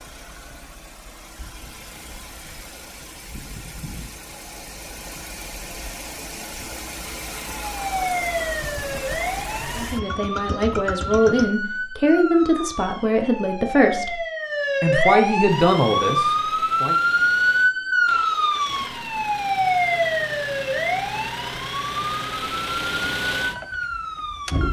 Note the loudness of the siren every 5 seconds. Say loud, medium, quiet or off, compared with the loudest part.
off, medium, medium, loud, medium.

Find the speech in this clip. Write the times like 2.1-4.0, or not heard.
9.8-14.2, 14.8-16.9.